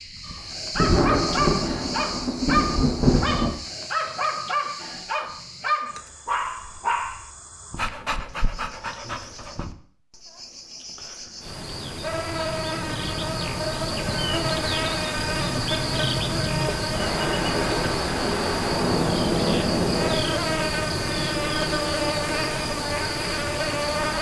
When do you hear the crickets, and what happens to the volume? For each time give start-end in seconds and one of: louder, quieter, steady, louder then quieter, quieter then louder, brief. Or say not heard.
0.0-24.1 quieter then louder.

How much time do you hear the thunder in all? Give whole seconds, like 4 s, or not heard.
6 s.